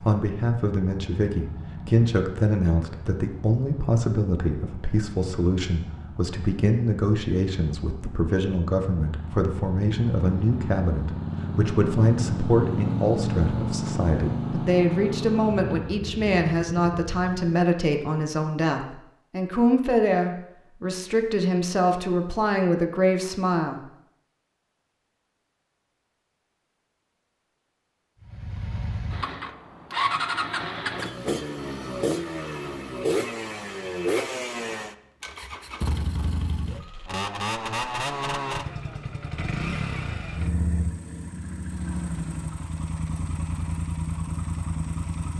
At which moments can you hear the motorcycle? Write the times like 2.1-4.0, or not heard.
0.0-17.6, 28.2-45.3.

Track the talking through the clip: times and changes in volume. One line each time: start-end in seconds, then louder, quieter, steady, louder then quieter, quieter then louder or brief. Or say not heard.
0.0-23.8 steady.